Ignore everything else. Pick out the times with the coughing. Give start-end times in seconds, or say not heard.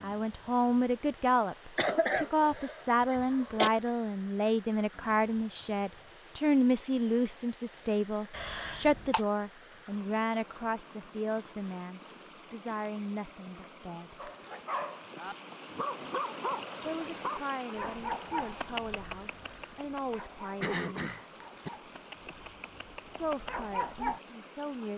1.8-3.7, 8.3-9.2, 20.6-21.7.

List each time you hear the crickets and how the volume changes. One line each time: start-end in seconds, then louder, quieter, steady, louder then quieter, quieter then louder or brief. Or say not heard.
not heard.